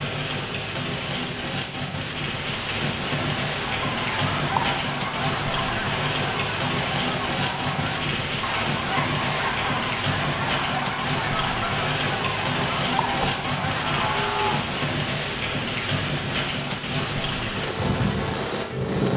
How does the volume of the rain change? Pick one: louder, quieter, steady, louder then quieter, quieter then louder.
steady.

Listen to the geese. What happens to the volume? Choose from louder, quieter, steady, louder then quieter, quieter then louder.
steady.